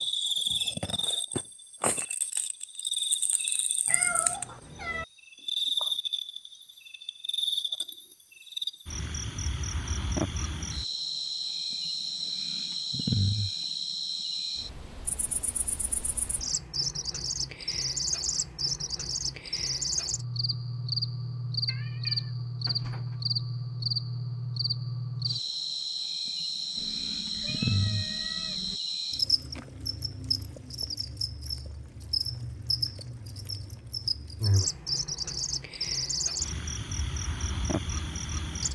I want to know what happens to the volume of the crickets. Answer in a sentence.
The volume of the crickets stays about the same.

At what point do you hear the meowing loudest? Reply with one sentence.
The loudest moment of the meowing is at 4 seconds.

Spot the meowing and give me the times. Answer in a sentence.
The meowing can be heard from 3.9 to 5.0 s, from 21.6 to 23.2 s and from 26.8 to 28.8 s.